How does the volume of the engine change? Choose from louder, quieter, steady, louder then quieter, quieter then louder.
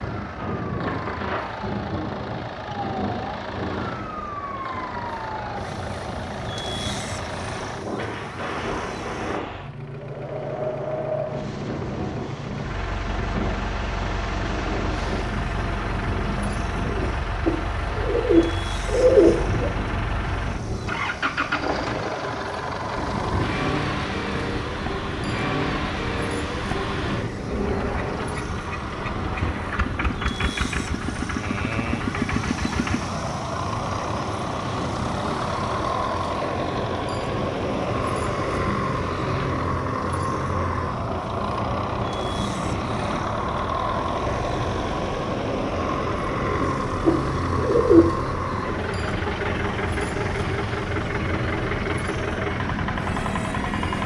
louder.